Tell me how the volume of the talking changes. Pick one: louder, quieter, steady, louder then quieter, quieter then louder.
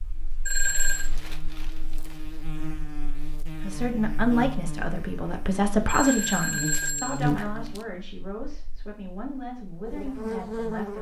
quieter.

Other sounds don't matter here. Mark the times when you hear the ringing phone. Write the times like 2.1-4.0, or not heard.
0.5-1.1, 5.8-7.2.